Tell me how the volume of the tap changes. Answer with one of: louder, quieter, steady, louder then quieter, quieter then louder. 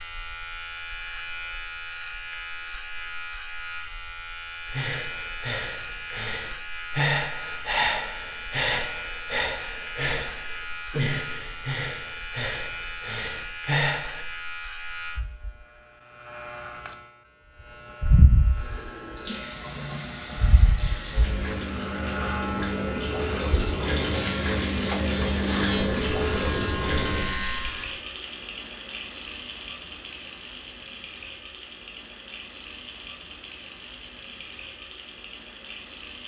louder then quieter.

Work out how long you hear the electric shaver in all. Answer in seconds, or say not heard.
28 s.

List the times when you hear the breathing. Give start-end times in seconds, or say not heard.
4.7-14.2.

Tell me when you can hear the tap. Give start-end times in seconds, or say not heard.
18.5-36.2.